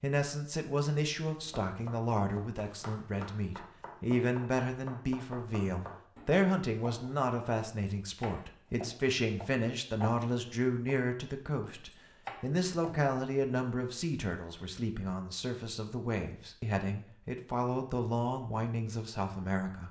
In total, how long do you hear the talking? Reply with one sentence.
The talking can be heard for 20 seconds in total.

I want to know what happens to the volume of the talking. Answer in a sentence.
The volume of the talking stays about the same.